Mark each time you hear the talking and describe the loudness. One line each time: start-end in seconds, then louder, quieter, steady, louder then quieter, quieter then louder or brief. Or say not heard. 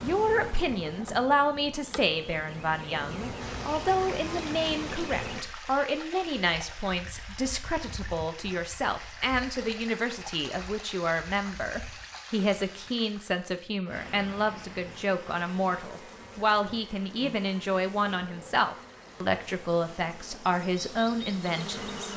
0.0-22.1 steady.